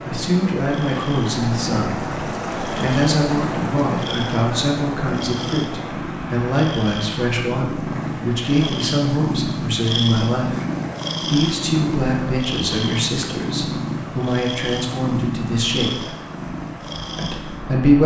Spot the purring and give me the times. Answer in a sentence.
You can hear the purring from 0.0 to 18.0 s.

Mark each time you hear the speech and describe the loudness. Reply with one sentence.
You can hear the speech from 0.1 to 10.6 s, at a steady volume; from 11.2 to 16.1 s, getting quieter then louder; and briefly from 17.1 to 18.0 s.